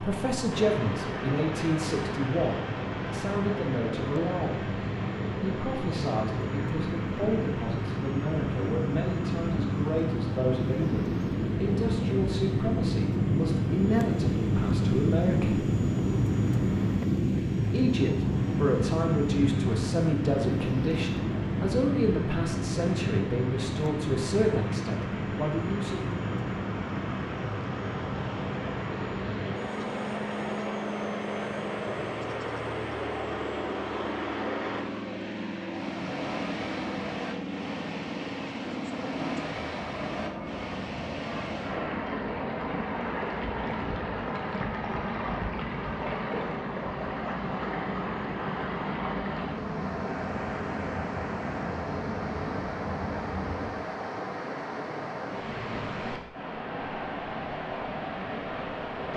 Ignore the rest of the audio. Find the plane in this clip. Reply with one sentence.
The plane can be heard from 0.0 to 54.0 s.